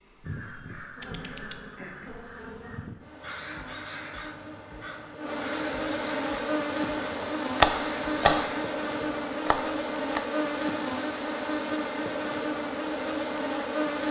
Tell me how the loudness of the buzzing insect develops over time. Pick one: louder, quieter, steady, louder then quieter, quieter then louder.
louder.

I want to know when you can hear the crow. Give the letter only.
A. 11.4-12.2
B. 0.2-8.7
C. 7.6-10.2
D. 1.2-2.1
B.